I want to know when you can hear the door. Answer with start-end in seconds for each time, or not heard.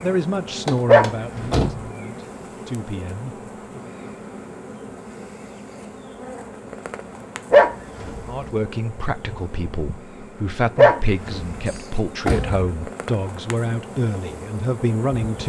0.7-1.8, 11.7-12.7.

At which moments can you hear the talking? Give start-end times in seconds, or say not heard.
0.0-3.8, 8.2-15.4.